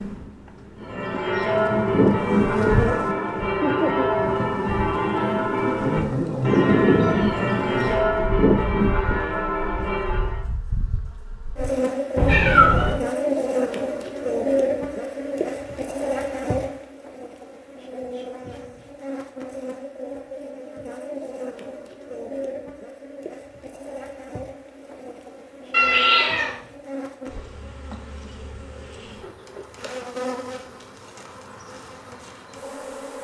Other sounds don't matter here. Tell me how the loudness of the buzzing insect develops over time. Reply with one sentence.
The loudness of the buzzing insect goes down.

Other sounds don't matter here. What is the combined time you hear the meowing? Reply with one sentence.
The meowing can be heard for 2 seconds in total.